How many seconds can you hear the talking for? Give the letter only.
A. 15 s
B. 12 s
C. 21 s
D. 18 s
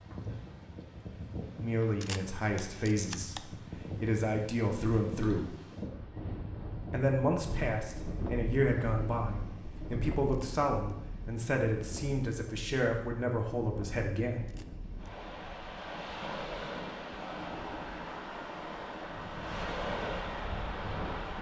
B.